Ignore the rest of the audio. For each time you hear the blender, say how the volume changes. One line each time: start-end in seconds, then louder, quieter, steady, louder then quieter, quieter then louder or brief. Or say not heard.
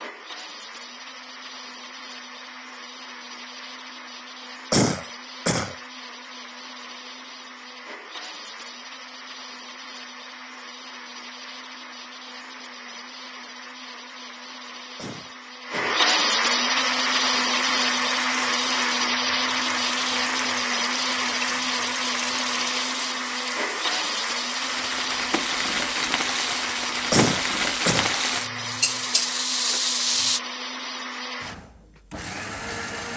0.0-33.1 louder then quieter.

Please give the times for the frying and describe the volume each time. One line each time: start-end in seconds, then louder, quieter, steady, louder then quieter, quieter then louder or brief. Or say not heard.
16.8-30.4 louder.